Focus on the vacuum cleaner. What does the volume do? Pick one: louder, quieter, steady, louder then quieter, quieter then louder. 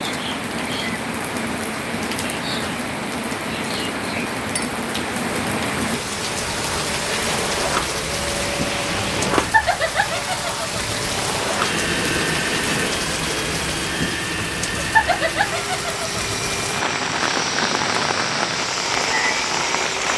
steady.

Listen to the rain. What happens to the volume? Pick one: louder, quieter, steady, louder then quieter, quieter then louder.
steady.